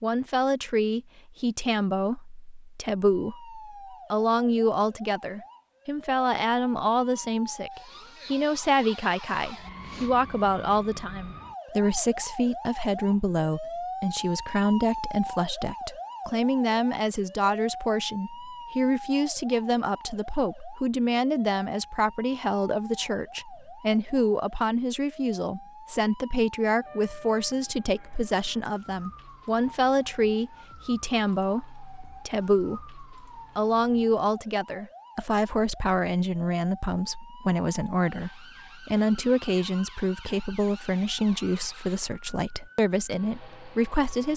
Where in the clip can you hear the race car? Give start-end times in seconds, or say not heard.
not heard.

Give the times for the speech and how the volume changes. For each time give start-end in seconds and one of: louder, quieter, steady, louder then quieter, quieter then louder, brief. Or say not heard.
0.0-44.3 steady.